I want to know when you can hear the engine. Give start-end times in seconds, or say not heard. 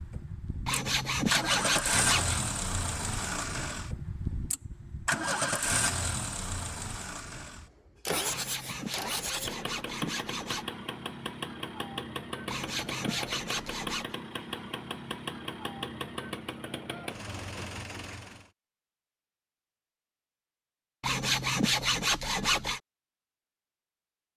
0.0-18.5.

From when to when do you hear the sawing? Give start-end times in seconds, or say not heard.
0.7-2.4, 8.2-10.7, 12.4-14.2, 21.0-22.8.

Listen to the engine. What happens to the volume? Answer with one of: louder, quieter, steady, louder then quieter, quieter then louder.
quieter.